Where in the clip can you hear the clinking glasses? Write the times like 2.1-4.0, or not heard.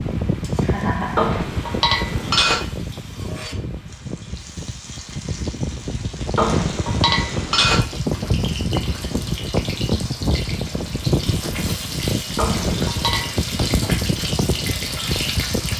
1.1-2.6, 6.3-7.8, 12.3-13.4.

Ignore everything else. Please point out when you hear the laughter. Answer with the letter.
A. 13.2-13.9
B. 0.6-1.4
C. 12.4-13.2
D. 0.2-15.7
B.